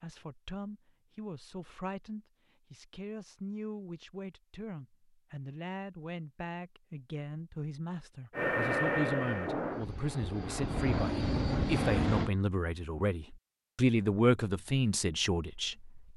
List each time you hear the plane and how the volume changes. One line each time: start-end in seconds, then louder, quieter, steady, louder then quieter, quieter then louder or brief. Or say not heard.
8.3-12.3 quieter then louder.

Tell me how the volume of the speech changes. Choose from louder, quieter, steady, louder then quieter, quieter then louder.
louder.